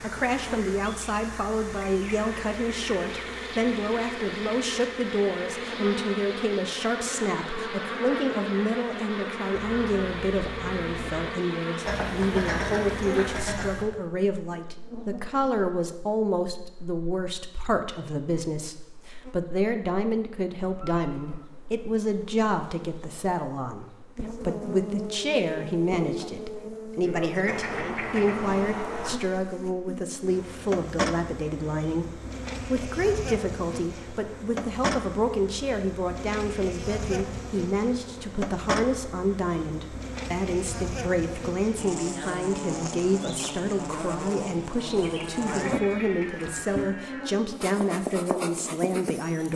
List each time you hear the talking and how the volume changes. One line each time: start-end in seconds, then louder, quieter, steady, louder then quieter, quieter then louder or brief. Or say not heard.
0.0-49.5 steady.